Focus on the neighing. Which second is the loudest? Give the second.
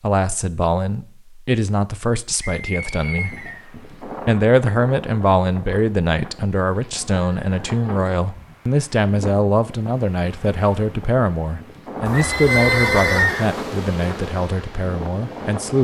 13 s.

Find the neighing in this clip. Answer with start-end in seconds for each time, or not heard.
2.4-3.6, 6.8-8.2, 12.1-13.5.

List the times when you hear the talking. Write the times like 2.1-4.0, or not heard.
0.0-3.5, 4.0-15.7.